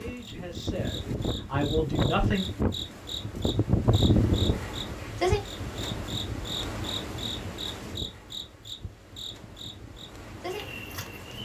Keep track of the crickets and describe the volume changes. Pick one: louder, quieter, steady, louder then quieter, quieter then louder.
louder then quieter.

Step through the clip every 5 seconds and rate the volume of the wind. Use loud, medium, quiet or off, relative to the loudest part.
loud, medium, quiet.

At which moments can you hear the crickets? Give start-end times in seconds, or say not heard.
0.0-11.4.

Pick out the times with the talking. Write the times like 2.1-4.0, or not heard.
0.0-2.5.